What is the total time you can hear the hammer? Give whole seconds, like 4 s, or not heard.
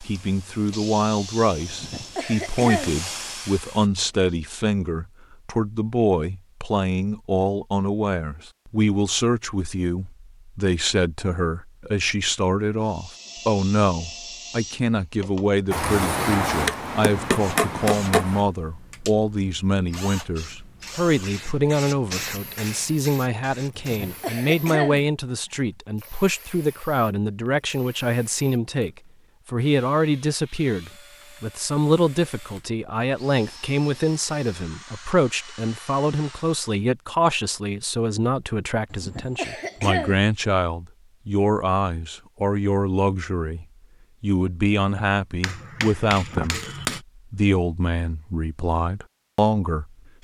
4 s.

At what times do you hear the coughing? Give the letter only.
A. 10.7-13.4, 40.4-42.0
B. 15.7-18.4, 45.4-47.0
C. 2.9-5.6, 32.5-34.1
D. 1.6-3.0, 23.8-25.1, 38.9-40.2
D.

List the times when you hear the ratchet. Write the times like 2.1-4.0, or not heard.
not heard.